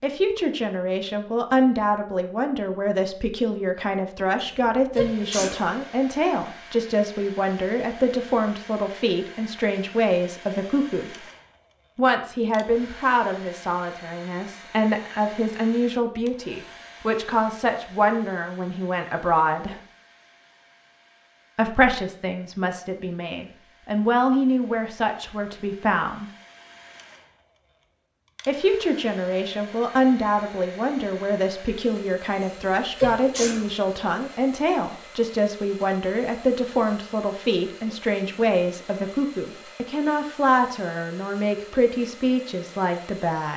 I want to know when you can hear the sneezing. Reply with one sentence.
The sneezing can be heard from 4.4 to 5.6 s and from 32.4 to 33.6 s.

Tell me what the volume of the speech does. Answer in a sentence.
The volume of the speech stays about the same.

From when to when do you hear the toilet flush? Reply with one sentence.
You can't hear the toilet flush here.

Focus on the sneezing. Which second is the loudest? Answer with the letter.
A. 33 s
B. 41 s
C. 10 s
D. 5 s
A.